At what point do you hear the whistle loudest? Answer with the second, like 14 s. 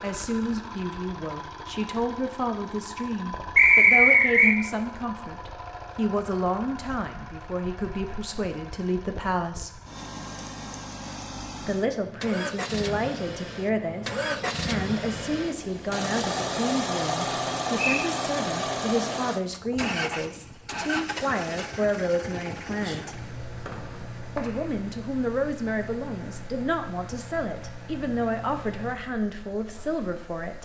4 s.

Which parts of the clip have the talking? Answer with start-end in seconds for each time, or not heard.
0.0-9.8, 11.7-23.1, 24.4-30.5.